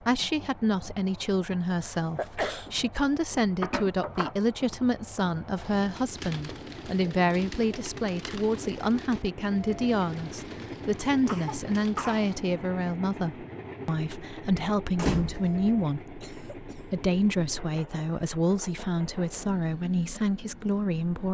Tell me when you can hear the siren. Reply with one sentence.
The siren can't be heard in this clip.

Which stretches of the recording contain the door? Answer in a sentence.
You can hear the door from 3.6 to 4.3 s and from 14.8 to 15.6 s.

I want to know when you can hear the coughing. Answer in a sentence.
The coughing can be heard from 1.8 to 2.7 s, from 11.2 to 12.3 s and from 16.2 to 16.9 s.